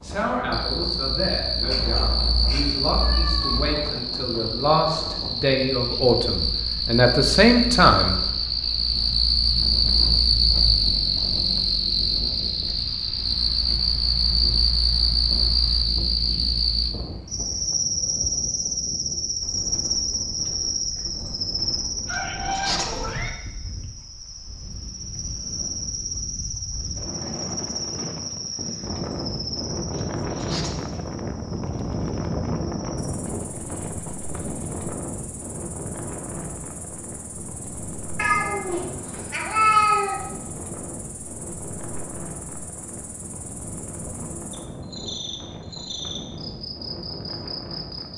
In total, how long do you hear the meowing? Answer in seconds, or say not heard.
6 s.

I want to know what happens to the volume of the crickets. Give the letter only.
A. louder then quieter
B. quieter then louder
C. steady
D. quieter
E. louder
D.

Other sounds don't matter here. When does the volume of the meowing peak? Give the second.
40 s.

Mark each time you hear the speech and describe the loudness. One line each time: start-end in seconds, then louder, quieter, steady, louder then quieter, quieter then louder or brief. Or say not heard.
0.0-8.2 louder.